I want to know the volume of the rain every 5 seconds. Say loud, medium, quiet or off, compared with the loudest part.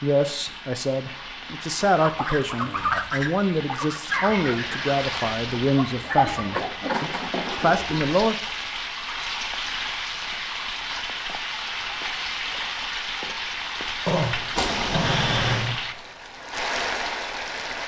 medium, loud, loud, loud.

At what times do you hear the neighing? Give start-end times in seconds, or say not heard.
14.6-15.8.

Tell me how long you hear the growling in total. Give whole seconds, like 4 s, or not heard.
2 s.